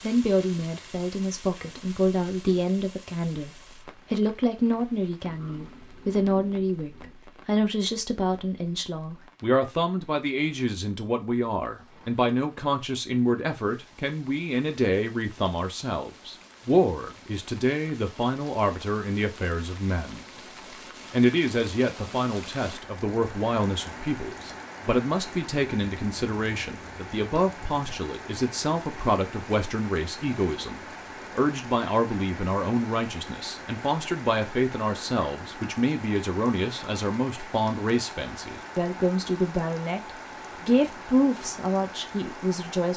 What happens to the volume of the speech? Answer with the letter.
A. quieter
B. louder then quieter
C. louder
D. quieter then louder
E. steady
E.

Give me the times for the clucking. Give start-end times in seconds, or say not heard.
not heard.